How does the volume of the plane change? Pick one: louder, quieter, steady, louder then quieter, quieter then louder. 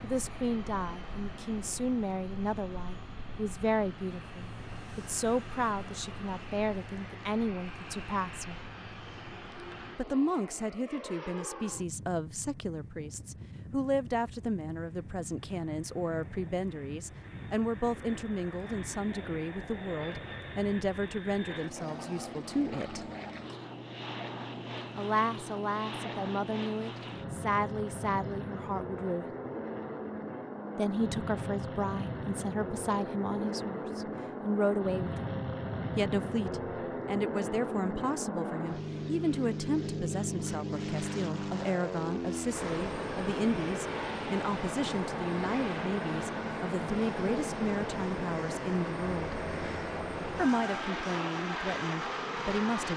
louder.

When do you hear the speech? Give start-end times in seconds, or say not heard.
0.0-8.6, 9.9-23.1, 24.9-29.3, 30.8-35.3, 36.0-49.4, 50.4-52.9.